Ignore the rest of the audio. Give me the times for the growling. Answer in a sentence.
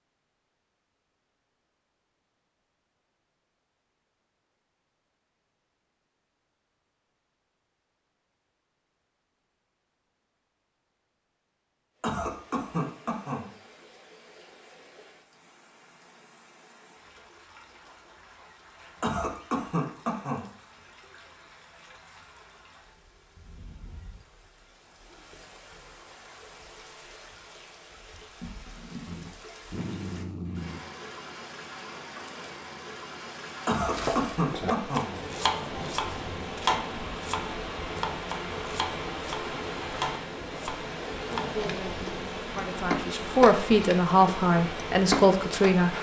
You can hear the growling from 29.1 to 30.8 s.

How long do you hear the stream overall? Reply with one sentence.
You can hear the stream for 34 seconds altogether.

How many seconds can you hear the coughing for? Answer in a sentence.
You can hear the coughing for 4 seconds altogether.